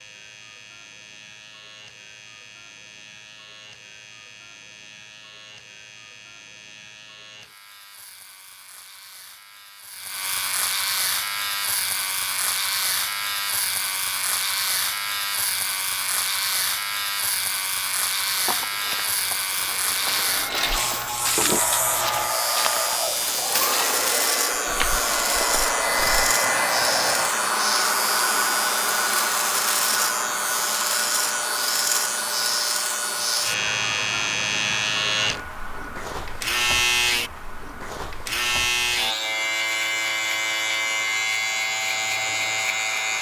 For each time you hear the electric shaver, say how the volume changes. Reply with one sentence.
You can hear the electric shaver from 0.0 to 43.1 s, getting louder.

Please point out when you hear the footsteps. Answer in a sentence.
The footsteps can be heard from 18.1 to 26.4 s.